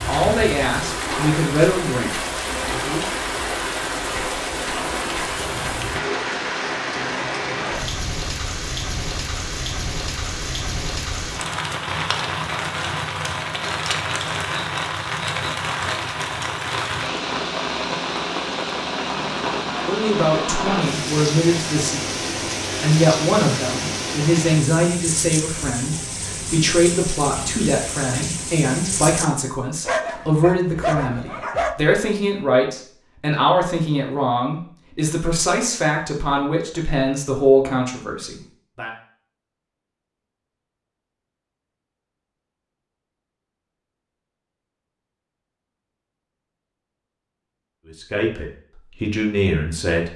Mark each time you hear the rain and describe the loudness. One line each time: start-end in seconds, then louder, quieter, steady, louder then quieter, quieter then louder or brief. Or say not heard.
0.0-29.2 steady.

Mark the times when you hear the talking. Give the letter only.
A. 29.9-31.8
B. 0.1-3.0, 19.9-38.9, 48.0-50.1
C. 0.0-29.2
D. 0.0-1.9
B.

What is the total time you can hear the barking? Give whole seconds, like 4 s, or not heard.
2 s.